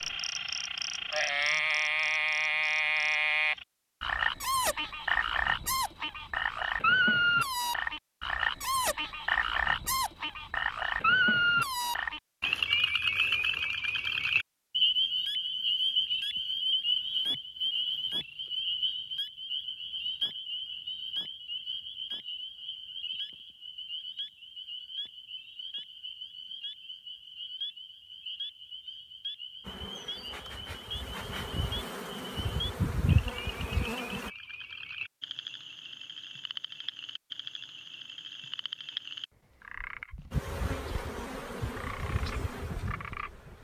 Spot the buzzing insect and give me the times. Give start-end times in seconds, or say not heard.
29.6-34.3, 40.3-43.5.